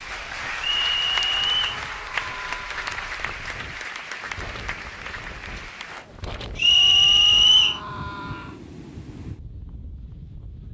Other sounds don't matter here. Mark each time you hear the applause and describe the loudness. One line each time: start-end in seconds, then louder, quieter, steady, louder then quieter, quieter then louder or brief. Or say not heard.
0.0-6.0 quieter.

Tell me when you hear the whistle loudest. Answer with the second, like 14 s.
7 s.